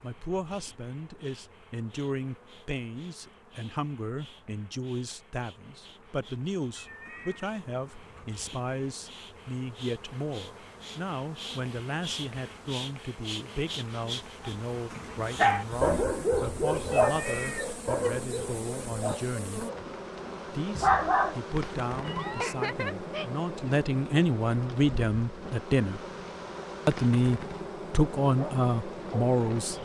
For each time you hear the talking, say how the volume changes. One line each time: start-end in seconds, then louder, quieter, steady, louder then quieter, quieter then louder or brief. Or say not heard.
0.0-19.6 steady
20.4-26.0 louder
26.9-29.8 brief.